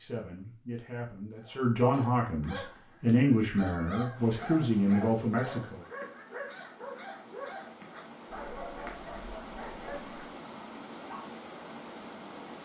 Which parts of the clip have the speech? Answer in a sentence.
You can hear the speech from 0.0 to 5.8 s.